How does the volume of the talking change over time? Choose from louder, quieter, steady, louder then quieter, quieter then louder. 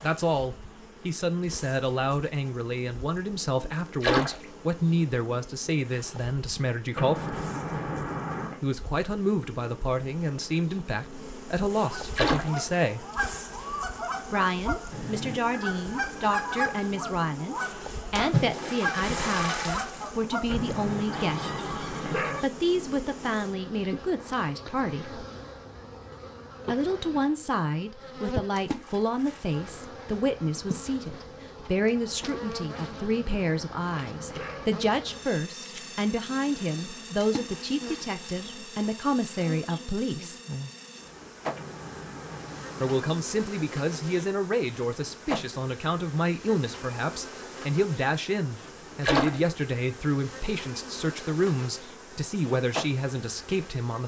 steady.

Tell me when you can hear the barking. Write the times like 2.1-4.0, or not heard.
7.0-8.6, 20.4-22.4, 32.9-34.6, 41.5-43.1.